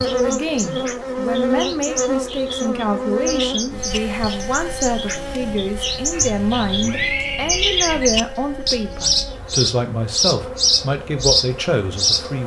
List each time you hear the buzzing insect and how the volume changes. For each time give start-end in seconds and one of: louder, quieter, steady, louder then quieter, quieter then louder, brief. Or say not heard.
0.0-12.4 quieter.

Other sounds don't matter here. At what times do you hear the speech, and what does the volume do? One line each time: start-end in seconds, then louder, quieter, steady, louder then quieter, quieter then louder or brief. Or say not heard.
0.0-12.4 steady.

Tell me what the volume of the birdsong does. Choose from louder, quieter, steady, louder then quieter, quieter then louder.
louder.